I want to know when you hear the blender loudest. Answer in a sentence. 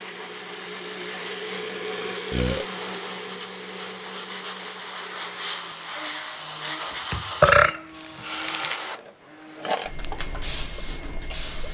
The volume of the blender peaks at 2 seconds.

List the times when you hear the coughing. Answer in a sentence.
The coughing can't be heard in this clip.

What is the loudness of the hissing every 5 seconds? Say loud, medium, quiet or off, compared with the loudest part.
medium, loud, loud.